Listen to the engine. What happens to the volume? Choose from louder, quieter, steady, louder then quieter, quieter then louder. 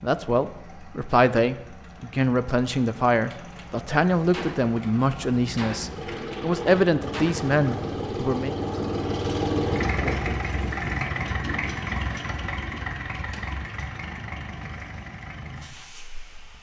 louder then quieter.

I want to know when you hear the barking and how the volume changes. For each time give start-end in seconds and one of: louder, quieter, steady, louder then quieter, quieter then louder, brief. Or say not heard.
not heard.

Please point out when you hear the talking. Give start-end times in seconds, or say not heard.
0.0-8.5.